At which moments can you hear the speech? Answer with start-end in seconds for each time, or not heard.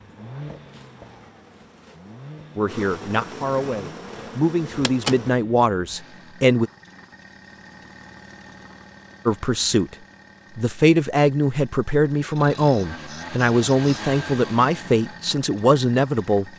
2.5-6.7, 9.2-9.9, 10.6-16.4.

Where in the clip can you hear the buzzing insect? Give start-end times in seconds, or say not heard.
0.0-5.4.